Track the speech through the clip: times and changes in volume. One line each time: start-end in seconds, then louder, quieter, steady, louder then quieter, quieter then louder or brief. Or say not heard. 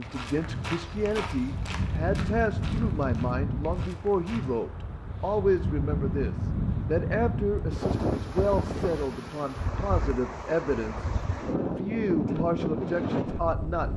0.0-13.9 steady.